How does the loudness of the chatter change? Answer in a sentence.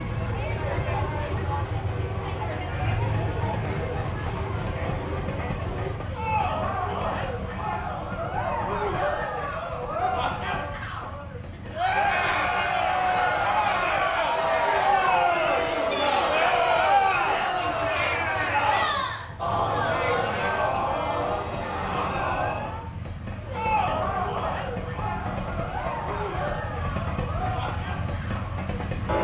The volume of the chatter goes up, then down.